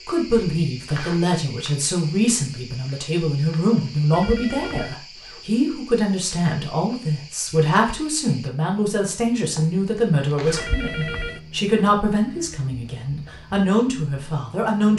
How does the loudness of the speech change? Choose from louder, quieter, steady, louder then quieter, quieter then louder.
steady.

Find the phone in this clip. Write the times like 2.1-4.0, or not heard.
4.1-5.0, 10.6-11.4.